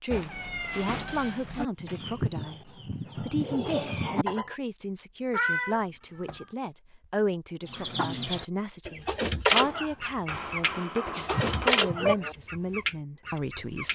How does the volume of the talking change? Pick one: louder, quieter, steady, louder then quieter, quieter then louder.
steady.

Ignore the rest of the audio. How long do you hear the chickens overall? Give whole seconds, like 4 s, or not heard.
9 s.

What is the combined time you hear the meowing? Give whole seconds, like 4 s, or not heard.
4 s.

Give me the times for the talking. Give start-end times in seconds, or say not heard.
0.0-13.9.